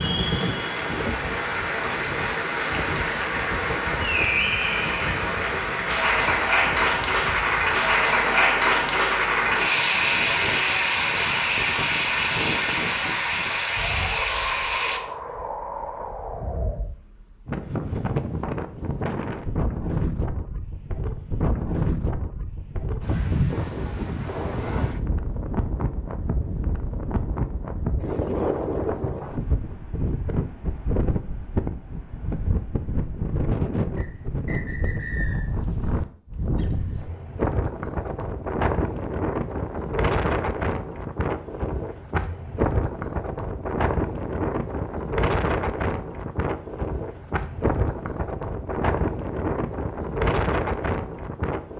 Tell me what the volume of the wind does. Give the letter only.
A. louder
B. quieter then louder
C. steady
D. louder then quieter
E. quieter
A.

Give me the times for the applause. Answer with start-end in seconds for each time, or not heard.
0.0-15.0.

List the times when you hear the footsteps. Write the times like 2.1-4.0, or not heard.
not heard.